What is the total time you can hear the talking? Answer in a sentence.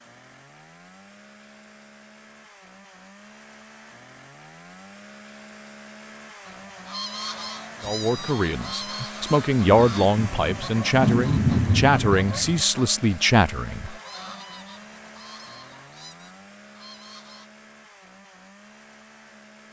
The talking can be heard for 6 seconds in total.